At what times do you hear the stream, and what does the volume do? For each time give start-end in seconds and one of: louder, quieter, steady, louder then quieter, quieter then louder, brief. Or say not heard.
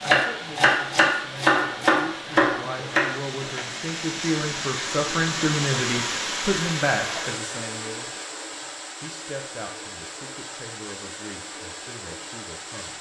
0.0-12.9 louder then quieter.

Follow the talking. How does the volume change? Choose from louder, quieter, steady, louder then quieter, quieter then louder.
louder then quieter.